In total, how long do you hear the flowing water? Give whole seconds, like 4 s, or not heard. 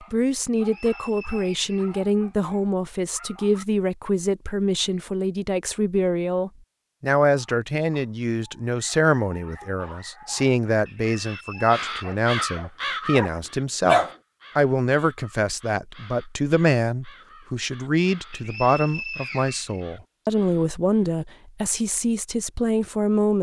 not heard.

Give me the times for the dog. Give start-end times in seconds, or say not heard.
0.0-3.6, 7.3-14.2.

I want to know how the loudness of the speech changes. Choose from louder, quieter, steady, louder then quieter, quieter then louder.
steady.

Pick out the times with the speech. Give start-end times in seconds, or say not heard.
0.1-23.3.